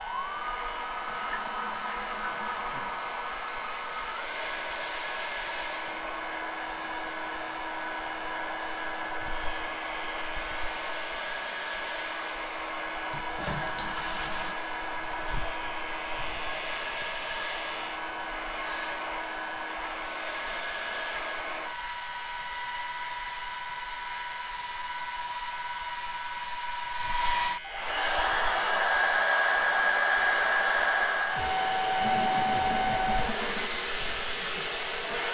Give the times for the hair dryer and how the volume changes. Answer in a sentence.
You can hear the hair dryer from 0.0 to 35.3 s, getting louder.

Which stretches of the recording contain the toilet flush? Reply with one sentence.
The toilet flush can be heard from 1.1 to 2.9 s, from 13.1 to 14.6 s and from 32.0 to 33.8 s.